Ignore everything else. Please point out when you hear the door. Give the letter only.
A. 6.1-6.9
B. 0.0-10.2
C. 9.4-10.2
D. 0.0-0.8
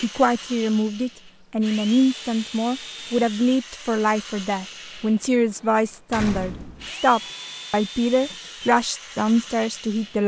A.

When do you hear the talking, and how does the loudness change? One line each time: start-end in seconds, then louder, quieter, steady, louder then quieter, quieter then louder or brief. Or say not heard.
0.0-10.2 steady.